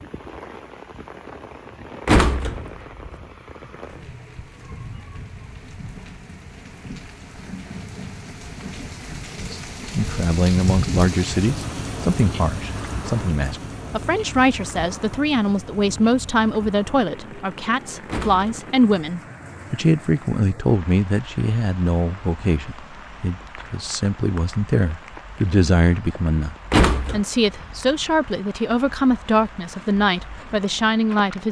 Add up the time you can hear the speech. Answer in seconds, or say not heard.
22 s.